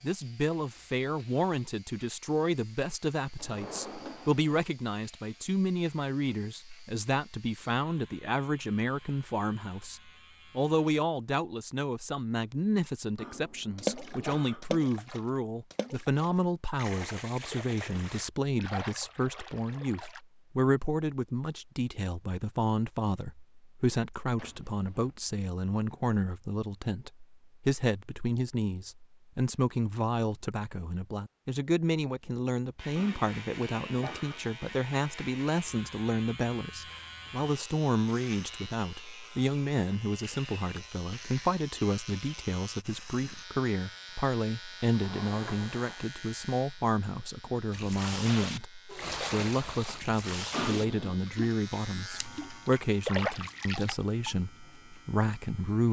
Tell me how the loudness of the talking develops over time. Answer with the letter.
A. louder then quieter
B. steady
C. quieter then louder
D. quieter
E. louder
B.